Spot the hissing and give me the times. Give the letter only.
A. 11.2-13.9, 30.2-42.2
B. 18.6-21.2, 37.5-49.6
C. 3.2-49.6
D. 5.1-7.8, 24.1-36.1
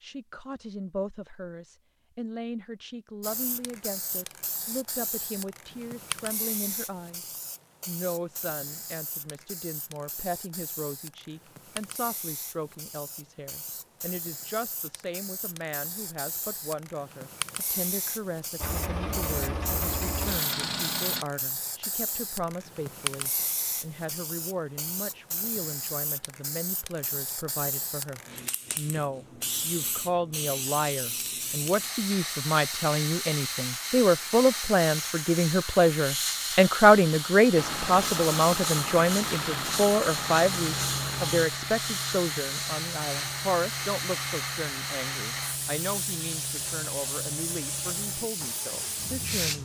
C.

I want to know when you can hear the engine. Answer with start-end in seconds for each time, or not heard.
18.6-21.2, 37.5-49.6.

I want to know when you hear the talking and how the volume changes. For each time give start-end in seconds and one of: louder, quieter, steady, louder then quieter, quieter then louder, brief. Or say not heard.
0.0-49.6 louder then quieter.